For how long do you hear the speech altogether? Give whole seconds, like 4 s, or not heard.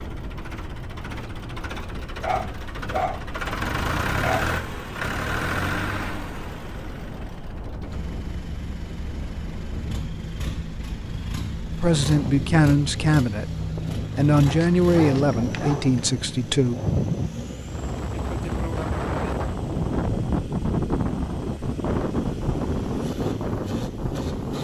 5 s.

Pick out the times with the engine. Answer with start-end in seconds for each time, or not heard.
0.0-24.5.